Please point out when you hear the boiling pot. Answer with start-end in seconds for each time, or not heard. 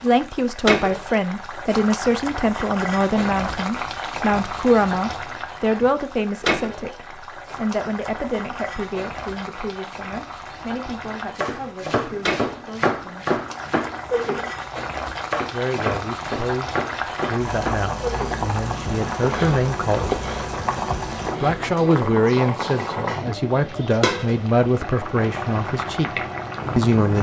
0.0-27.1.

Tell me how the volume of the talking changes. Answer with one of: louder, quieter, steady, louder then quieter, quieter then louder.
quieter then louder.